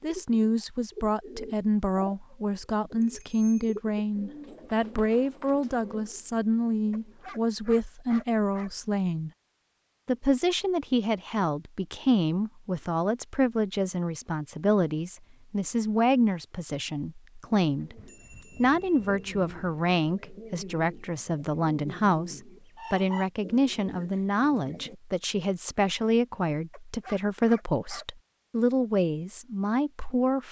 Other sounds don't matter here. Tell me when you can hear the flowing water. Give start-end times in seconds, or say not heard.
not heard.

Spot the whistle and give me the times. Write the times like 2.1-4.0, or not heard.
not heard.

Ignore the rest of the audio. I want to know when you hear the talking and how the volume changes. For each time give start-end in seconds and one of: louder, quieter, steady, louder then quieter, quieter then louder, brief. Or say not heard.
0.0-9.3 steady
10.1-17.9 steady
18.6-30.4 steady.